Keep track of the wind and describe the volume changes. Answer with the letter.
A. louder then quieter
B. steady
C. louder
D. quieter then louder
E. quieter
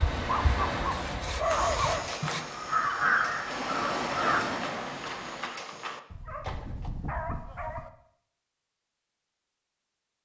D.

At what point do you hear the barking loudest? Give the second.
2 s.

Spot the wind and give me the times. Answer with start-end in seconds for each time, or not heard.
0.0-5.5.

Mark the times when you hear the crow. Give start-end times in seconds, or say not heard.
0.0-4.6.